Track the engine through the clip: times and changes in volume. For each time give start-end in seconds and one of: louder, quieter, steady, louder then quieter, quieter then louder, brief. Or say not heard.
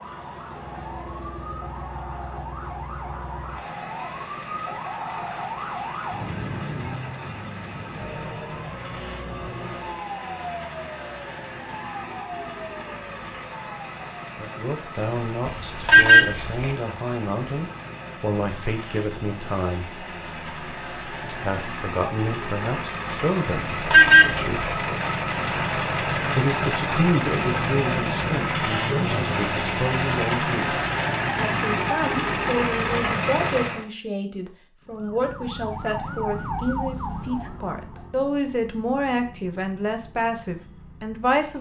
0.0-33.9 louder.